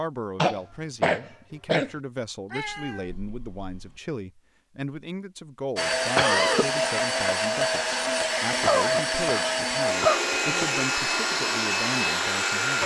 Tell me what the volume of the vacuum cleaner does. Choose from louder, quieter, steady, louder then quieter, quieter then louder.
steady.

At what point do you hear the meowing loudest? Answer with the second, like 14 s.
3 s.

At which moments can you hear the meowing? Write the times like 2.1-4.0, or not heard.
2.5-4.0.